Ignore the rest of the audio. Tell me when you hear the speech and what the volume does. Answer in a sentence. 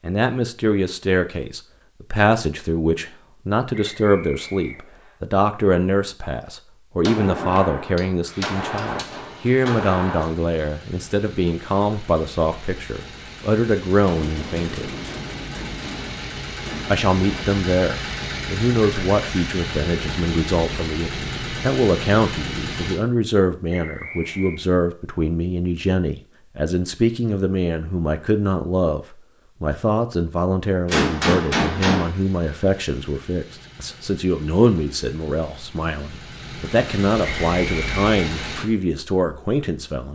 You can hear the speech from 0.0 to 14.9 s, at a steady volume; and from 16.9 to 40.1 s, at a steady volume.